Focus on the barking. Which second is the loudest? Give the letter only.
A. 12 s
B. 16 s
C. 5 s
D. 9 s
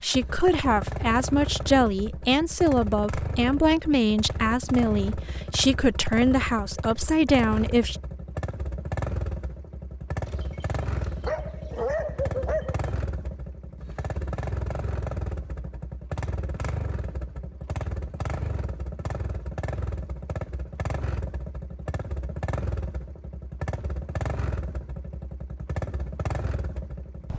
A.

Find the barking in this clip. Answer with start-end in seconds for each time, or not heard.
10.2-12.9.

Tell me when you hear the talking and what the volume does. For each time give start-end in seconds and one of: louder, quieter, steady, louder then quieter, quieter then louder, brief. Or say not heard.
0.0-8.0 steady.